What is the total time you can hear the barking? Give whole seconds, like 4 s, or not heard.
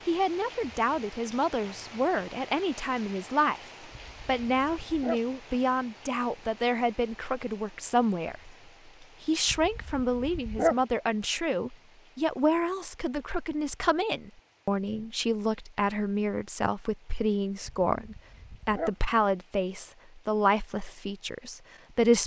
4 s.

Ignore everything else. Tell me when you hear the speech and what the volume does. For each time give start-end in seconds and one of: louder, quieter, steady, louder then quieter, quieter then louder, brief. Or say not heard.
0.1-22.2 steady.